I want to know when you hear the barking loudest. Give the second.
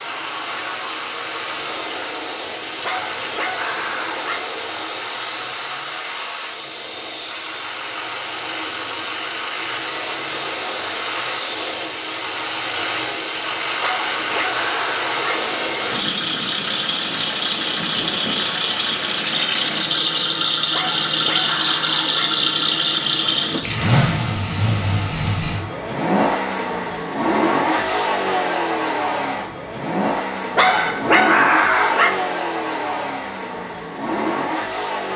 31 s.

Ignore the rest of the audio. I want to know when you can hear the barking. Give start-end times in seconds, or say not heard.
2.8-4.4, 13.8-15.3, 20.7-22.3, 30.6-32.1.